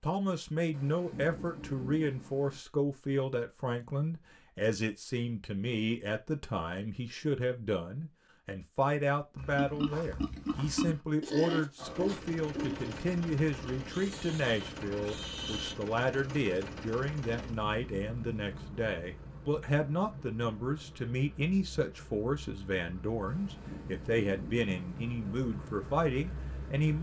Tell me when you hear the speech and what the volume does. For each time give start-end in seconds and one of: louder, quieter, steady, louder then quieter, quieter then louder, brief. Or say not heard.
0.0-26.9 steady.